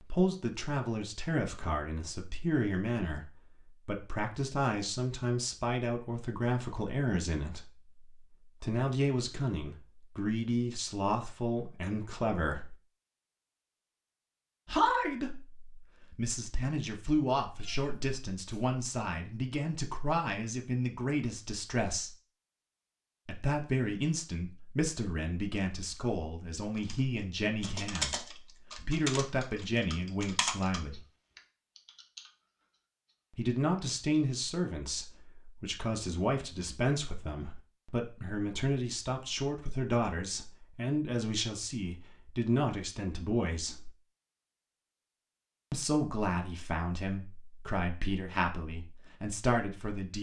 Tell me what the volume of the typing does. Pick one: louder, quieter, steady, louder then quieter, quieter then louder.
quieter.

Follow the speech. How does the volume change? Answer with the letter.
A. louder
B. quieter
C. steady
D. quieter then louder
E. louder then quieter
C.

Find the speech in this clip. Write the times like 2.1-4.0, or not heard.
0.0-12.8, 14.7-22.1, 23.2-31.1, 33.4-43.9, 45.7-50.1.